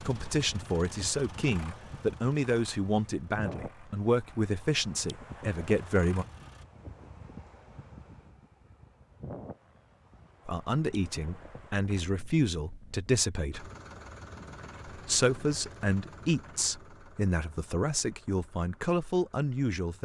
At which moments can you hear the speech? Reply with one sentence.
You can hear the speech from 0.0 to 6.2 s, from 10.4 to 13.7 s and from 14.8 to 20.0 s.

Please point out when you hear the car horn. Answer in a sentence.
You can't hear the car horn here.